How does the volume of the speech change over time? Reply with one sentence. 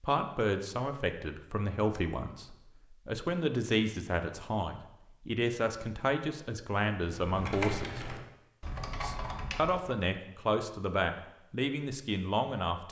The volume of the speech stays about the same.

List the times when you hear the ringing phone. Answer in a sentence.
The ringing phone can't be heard in this clip.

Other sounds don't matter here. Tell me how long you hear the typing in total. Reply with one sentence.
You can hear the typing for 3 seconds altogether.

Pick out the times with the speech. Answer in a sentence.
You can hear the speech from 0.0 to 8.1 s and from 9.0 to 12.8 s.